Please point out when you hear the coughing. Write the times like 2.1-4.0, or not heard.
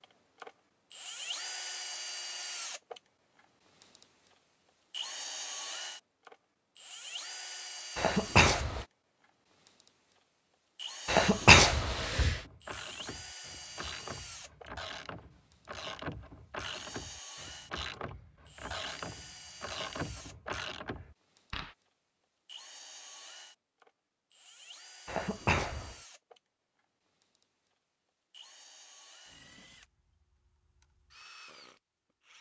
8.0-8.8, 11.1-12.4, 25.1-25.9.